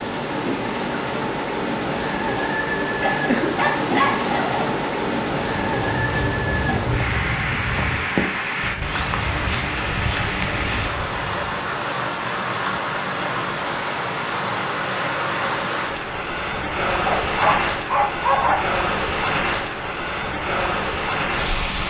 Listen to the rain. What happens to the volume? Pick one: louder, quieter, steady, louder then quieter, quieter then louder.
steady.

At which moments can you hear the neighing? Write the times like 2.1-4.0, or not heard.
not heard.